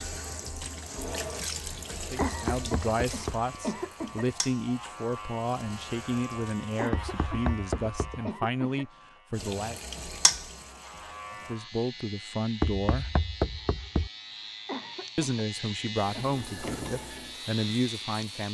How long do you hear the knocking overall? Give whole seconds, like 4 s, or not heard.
4 s.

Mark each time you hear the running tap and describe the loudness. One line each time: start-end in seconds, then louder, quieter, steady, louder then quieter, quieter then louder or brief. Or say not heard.
0.0-7.0 quieter
9.3-11.6 brief
16.1-18.4 brief.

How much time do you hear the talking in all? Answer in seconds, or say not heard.
13 s.